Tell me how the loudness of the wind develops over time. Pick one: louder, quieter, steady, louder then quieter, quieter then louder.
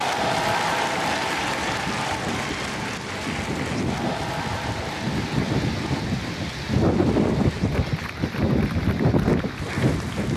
louder.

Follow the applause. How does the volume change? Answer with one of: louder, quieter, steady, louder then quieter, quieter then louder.
quieter.